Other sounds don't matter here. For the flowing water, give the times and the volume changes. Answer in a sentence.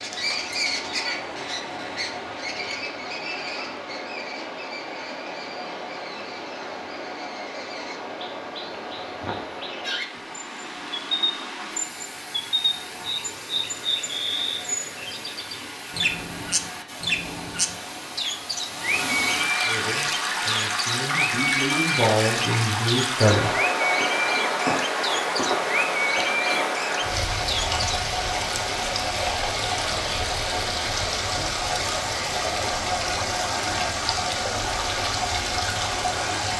The flowing water can be heard from 0.0 to 36.5 s, getting louder.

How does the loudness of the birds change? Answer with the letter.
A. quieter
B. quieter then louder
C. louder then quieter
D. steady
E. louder
B.